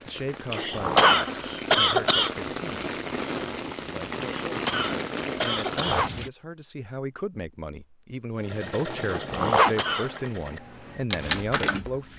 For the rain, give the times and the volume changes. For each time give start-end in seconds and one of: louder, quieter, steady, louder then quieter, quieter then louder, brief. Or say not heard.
0.0-6.3 louder.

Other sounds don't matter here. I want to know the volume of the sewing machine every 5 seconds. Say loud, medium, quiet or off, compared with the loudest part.
off, medium, loud.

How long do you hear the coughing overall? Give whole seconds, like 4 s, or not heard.
4 s.